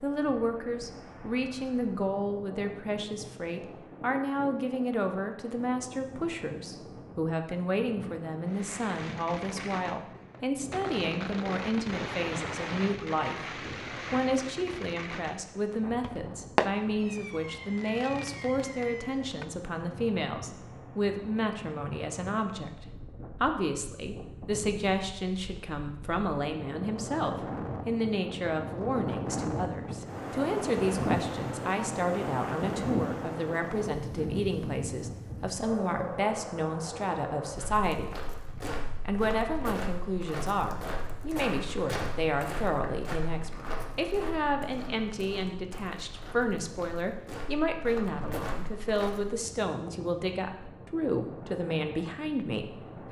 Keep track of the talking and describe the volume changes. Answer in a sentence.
The loudness of the talking stays about the same.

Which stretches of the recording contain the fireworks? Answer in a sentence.
The fireworks can be heard from 8.4 to 19.5 s.